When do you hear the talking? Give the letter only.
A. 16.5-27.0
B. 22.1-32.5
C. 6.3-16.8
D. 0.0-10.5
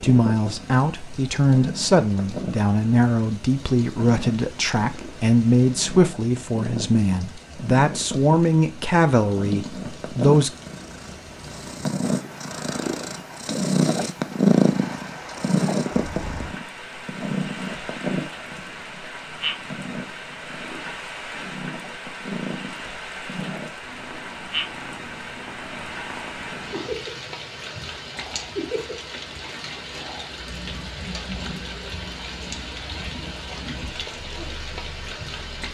D.